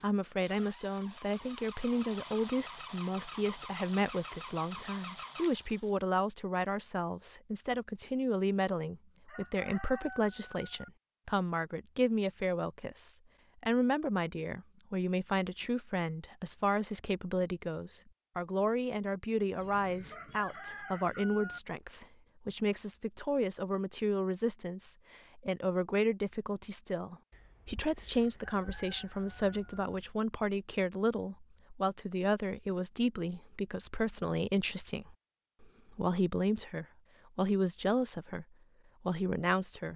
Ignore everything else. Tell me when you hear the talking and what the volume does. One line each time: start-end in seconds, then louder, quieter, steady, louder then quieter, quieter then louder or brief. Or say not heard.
0.0-39.9 steady.